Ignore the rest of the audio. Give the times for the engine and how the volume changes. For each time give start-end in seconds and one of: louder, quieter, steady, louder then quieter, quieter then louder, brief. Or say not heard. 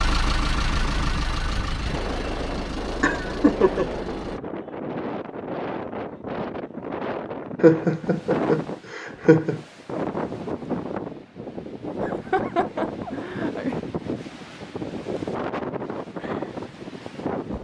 0.0-4.4 quieter.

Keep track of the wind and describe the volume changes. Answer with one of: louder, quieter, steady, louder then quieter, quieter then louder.
steady.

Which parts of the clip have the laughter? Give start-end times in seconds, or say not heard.
3.0-3.9, 7.6-9.6, 12.0-13.8.